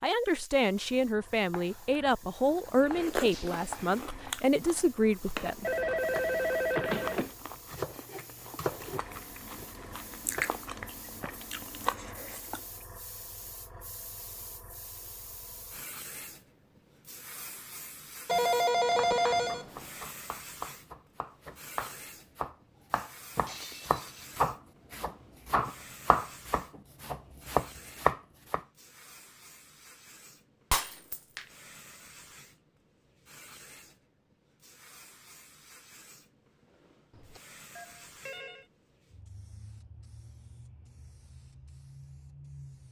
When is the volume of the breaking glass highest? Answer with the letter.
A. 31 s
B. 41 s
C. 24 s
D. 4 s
A.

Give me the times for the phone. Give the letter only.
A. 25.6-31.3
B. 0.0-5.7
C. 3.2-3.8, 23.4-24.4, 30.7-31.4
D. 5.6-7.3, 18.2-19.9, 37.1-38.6
D.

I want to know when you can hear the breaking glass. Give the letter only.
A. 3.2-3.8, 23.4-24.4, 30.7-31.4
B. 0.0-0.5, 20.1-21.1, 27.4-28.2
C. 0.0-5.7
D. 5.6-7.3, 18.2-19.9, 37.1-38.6
A.